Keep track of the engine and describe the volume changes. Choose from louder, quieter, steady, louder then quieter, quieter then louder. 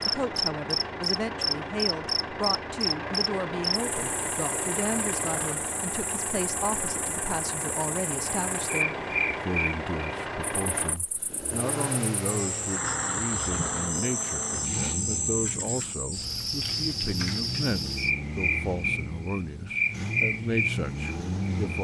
steady.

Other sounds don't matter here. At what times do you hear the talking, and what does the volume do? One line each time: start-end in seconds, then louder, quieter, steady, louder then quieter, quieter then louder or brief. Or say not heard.
0.1-21.7 steady.